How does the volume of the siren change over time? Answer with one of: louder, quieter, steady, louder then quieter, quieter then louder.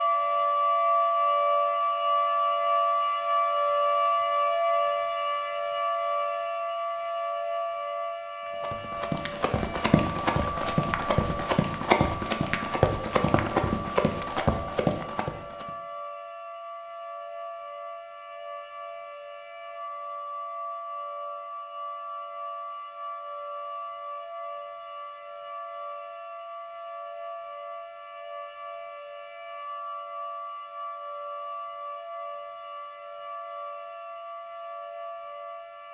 quieter.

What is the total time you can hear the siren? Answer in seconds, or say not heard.
36 s.